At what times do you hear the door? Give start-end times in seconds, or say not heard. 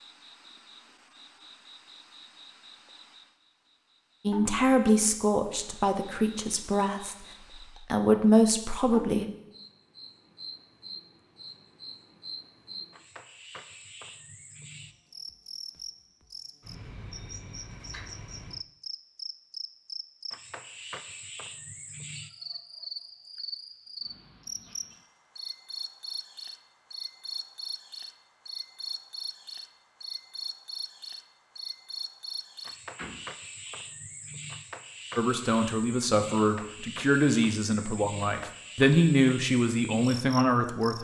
33.0-33.7.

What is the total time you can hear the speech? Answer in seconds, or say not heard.
11 s.